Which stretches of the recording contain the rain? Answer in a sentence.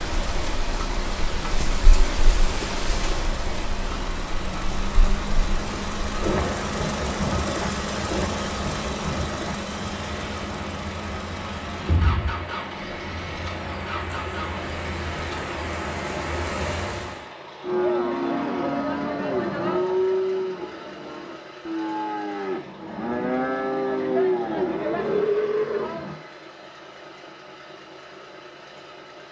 You can hear the rain from 0.0 to 17.2 s.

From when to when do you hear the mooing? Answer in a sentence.
The mooing can be heard from 17.6 to 26.2 s.